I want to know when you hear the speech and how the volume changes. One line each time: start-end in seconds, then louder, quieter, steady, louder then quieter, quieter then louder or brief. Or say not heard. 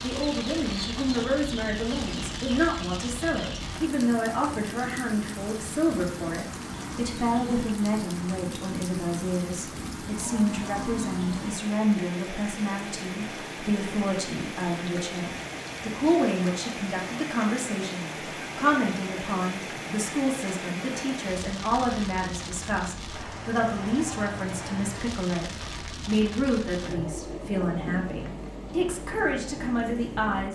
0.0-30.5 steady.